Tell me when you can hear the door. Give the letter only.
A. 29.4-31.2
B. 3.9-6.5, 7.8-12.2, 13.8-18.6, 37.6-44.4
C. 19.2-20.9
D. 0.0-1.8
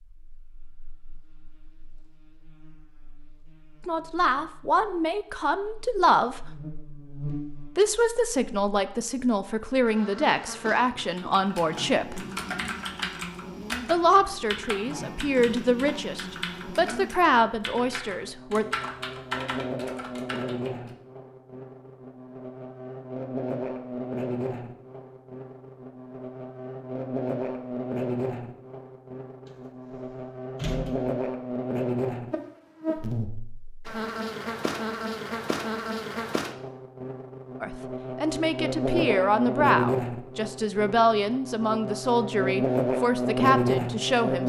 A.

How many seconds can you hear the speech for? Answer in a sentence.
You can hear the speech for 19 seconds altogether.